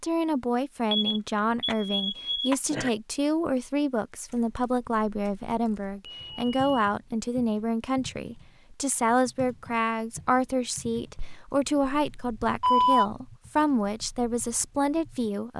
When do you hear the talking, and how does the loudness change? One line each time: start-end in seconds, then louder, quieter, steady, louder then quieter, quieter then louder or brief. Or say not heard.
0.0-15.5 steady.